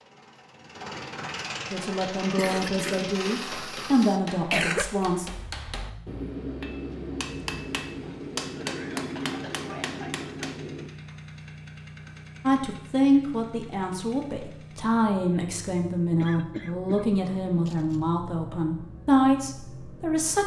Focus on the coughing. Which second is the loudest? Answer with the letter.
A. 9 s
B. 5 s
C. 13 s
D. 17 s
B.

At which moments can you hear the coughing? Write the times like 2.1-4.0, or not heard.
2.4-5.0, 8.0-10.5, 16.2-18.0.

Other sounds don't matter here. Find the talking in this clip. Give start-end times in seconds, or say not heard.
1.7-5.3, 12.4-20.4.